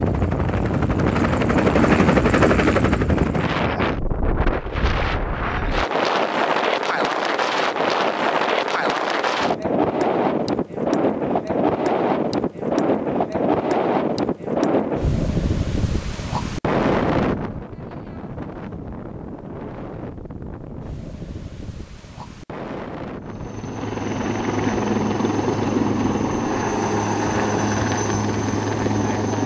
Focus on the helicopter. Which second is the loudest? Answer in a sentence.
The volume of the helicopter peaks at 2 seconds.